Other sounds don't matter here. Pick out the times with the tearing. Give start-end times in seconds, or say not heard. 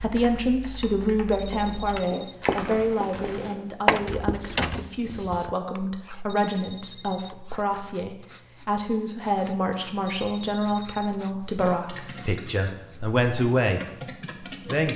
not heard.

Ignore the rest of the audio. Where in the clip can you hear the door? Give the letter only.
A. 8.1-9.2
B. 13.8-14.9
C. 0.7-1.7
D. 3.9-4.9
D.